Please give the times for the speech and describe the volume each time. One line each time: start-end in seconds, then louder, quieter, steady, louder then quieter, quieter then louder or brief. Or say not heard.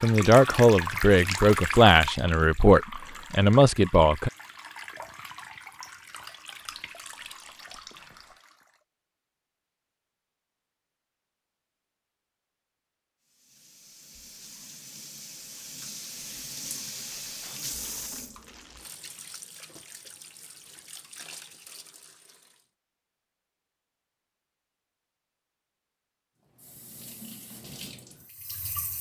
0.0-4.3 steady.